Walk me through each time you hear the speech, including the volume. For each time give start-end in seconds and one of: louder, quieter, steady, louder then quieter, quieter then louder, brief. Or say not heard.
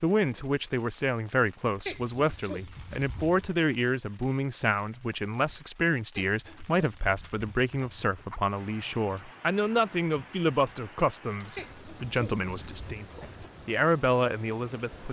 0.0-15.0 steady.